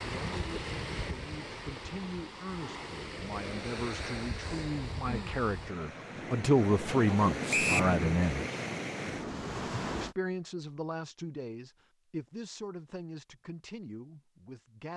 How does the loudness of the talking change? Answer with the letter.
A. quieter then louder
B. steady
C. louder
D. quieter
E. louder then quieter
E.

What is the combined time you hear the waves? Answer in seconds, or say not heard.
10 s.